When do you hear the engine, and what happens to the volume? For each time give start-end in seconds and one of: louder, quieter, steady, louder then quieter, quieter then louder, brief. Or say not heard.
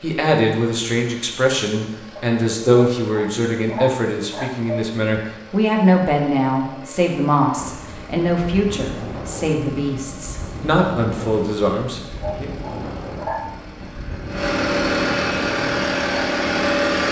0.0-17.0 louder.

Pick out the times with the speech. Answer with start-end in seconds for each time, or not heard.
0.0-12.5.